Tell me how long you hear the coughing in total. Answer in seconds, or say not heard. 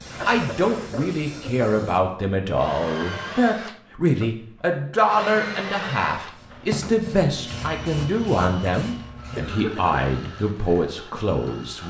2 s.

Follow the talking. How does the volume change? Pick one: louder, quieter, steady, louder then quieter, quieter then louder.
steady.